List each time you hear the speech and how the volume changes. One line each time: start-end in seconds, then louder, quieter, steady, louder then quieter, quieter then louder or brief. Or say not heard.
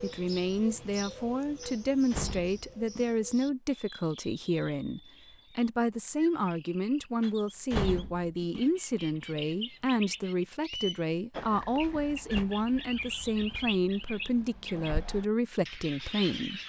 0.0-16.6 steady.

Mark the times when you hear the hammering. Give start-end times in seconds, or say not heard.
not heard.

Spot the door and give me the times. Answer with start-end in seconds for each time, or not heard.
1.6-3.0, 7.2-8.7, 11.8-12.4.